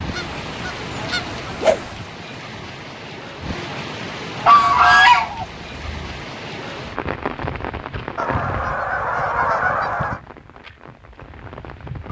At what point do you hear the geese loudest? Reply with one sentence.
The loudest moment of the geese is at 5 seconds.